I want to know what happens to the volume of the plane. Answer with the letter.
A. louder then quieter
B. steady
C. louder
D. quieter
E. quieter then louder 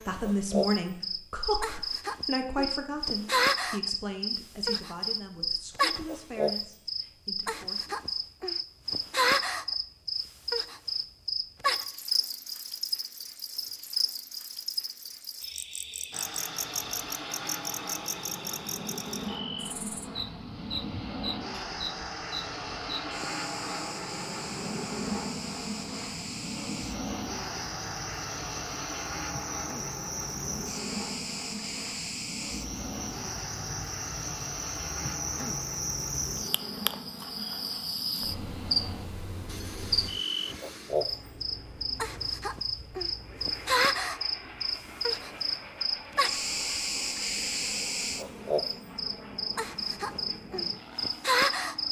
D.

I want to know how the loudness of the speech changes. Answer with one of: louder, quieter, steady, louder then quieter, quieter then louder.
quieter.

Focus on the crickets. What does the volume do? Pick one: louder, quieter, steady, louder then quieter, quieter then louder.
quieter then louder.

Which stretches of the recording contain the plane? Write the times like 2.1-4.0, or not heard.
16.1-51.8.